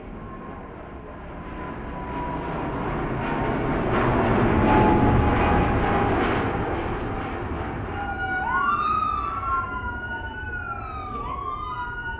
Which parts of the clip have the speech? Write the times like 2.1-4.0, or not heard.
not heard.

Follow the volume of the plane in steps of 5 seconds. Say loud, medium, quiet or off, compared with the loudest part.
loud, loud, quiet.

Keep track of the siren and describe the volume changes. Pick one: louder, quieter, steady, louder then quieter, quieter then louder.
quieter.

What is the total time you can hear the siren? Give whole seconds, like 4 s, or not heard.
4 s.